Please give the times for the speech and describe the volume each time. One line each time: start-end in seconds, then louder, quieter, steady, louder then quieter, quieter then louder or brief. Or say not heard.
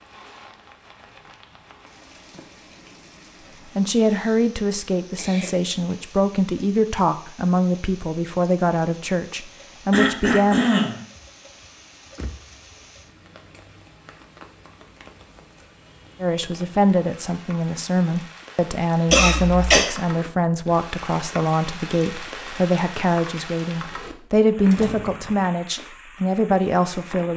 3.8-10.6 steady
16.2-27.3 steady.